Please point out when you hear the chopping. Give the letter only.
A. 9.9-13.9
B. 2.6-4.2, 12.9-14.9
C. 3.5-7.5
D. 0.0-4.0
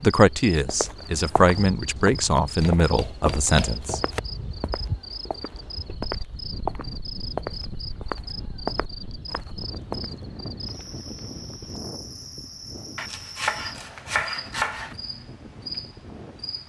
B.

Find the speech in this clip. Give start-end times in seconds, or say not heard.
0.0-4.0.